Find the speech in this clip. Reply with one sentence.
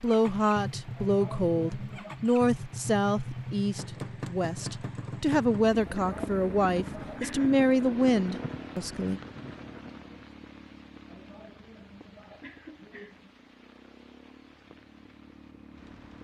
You can hear the speech from 0.0 to 9.2 s.